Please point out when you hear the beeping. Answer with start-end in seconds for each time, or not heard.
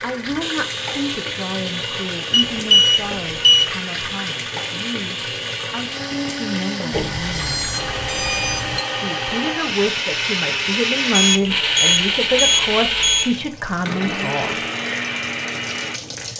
2.3-3.7, 6.9-8.8, 11.1-13.2.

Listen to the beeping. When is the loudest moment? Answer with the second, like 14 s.
3 s.